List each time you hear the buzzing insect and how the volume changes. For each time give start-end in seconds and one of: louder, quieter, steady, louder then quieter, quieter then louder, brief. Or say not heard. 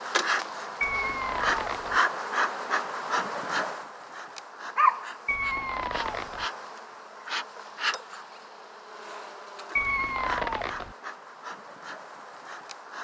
0.0-13.0 quieter.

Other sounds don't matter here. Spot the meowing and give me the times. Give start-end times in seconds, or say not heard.
0.8-2.0, 5.2-6.5, 9.8-10.9.